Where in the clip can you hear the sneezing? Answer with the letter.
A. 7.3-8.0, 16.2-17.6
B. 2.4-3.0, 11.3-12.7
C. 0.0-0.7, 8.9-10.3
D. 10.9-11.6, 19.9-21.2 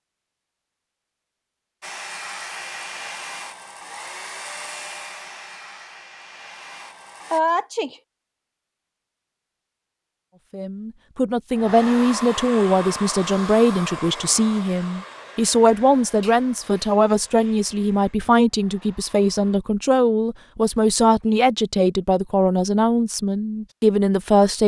A.